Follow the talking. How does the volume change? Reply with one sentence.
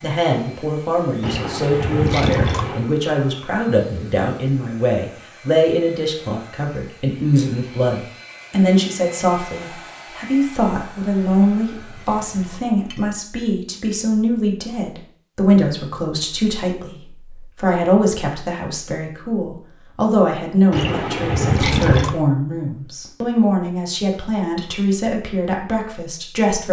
The loudness of the talking stays about the same.